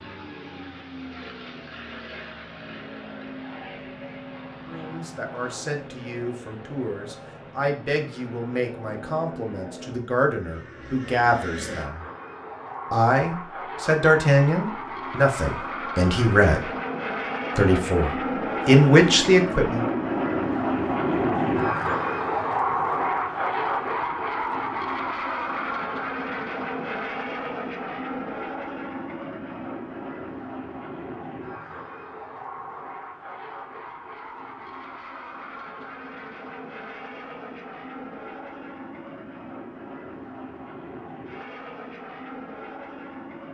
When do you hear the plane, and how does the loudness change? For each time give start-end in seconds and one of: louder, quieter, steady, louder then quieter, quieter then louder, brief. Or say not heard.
0.0-43.4 louder then quieter.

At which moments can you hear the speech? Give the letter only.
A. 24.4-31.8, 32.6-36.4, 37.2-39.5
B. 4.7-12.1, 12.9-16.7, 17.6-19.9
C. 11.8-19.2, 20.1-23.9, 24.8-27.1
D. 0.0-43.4
B.